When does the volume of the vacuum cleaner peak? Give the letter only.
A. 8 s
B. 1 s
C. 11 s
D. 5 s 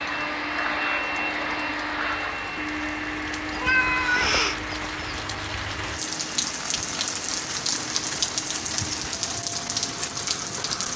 B.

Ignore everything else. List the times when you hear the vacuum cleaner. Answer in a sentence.
The vacuum cleaner can be heard from 0.0 to 10.9 s.